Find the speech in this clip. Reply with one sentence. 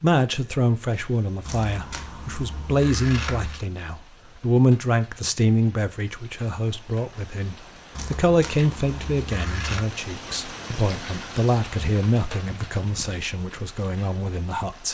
The speech can be heard from 0.0 to 14.8 s.